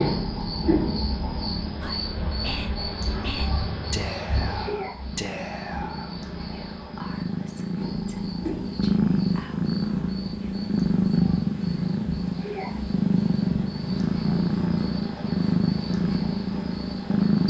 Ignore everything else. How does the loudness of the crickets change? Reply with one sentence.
The volume of the crickets goes down.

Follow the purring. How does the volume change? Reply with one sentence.
The loudness of the purring goes up.